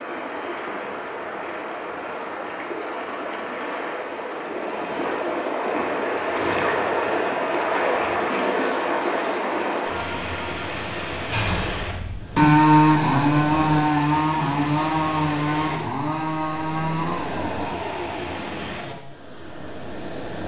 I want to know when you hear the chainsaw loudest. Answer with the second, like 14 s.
13 s.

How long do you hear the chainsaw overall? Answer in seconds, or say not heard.
8 s.